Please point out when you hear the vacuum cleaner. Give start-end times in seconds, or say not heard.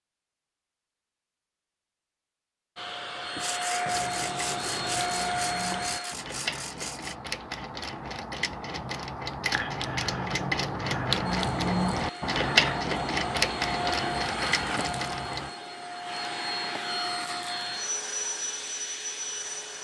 2.8-6.2, 11.2-19.7.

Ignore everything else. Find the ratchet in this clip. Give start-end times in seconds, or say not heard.
3.9-15.6.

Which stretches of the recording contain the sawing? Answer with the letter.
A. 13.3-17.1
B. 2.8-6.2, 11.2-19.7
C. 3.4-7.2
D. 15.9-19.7
C.